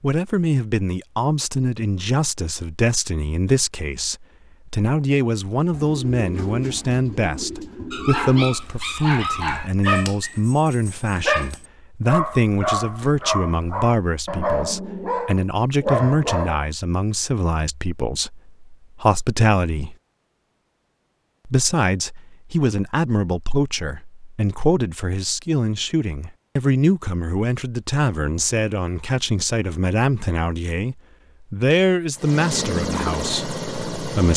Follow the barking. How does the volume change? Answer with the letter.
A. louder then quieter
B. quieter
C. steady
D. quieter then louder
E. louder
C.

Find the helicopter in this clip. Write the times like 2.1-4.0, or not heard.
32.1-34.3.